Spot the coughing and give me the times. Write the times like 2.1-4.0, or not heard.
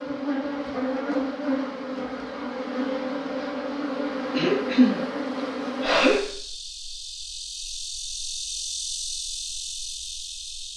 4.3-6.2.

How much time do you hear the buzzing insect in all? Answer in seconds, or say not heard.
11 s.